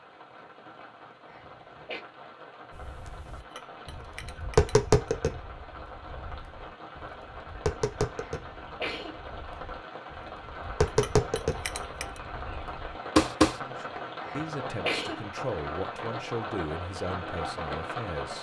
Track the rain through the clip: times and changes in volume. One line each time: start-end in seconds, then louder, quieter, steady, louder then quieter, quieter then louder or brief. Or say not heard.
0.0-18.3 louder.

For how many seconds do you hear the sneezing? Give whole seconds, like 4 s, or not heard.
3 s.